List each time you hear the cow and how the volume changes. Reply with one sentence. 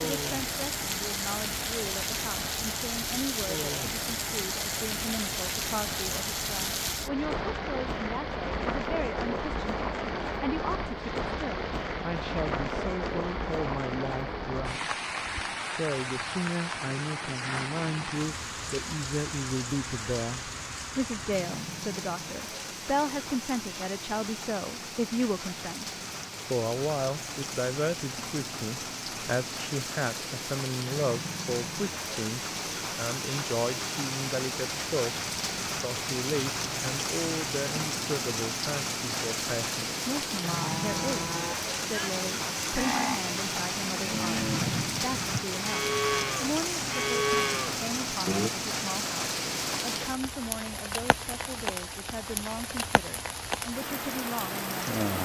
The cow can be heard from 40.6 to 48.5 s, getting louder.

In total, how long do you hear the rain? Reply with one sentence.
You can hear the rain for 55 seconds altogether.